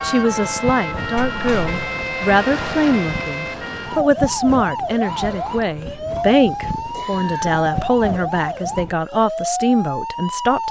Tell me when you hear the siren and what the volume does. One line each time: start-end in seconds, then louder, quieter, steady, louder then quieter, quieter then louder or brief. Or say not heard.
0.0-10.6 steady.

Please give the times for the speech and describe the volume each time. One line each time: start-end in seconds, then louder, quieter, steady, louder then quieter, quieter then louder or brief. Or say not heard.
0.0-10.6 steady.